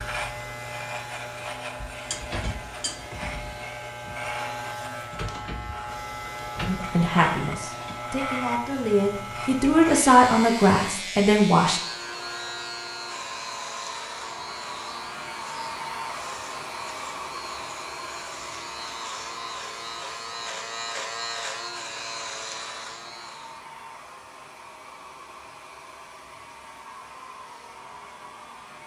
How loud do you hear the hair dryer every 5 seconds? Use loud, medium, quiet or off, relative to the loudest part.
medium, medium, loud, loud, medium, medium.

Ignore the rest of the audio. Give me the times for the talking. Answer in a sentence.
The talking can be heard from 6.7 to 11.8 s.